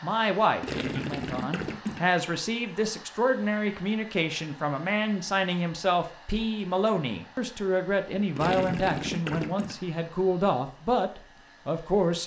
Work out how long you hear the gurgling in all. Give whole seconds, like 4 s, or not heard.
3 s.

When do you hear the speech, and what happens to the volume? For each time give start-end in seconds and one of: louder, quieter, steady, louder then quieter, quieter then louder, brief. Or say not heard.
0.0-12.2 steady.